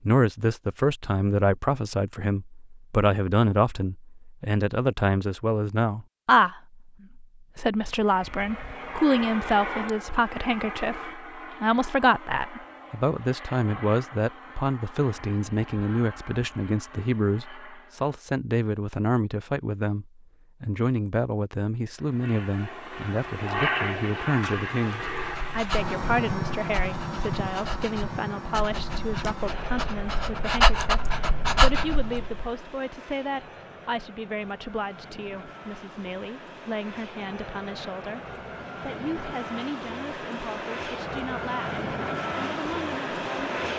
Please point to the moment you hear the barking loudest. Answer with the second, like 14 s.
31 s.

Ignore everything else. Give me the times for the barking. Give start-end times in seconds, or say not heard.
24.9-32.5.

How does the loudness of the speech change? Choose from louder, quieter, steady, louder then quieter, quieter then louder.
quieter.